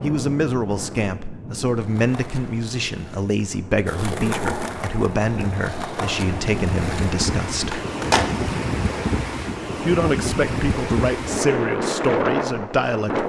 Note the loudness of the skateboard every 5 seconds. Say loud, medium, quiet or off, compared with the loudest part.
loud, loud, off.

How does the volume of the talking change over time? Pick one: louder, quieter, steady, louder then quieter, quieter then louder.
steady.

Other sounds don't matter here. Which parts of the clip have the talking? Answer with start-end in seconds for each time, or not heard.
0.0-7.8, 9.8-13.2.